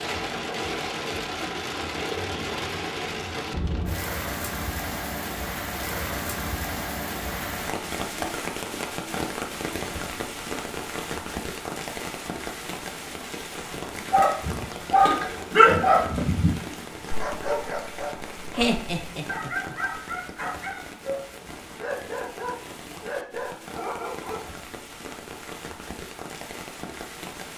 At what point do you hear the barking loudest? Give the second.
16 s.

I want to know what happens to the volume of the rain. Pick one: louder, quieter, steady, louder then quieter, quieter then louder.
quieter.